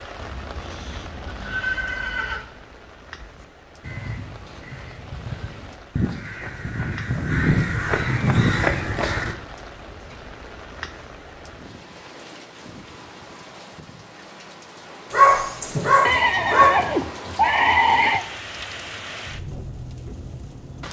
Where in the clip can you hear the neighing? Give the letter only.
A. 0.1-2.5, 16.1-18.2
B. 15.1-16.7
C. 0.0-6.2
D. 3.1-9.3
A.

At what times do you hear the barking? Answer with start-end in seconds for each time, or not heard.
15.1-16.7.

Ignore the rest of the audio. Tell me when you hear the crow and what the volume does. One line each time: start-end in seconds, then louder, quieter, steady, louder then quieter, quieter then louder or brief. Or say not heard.
3.1-9.3 louder.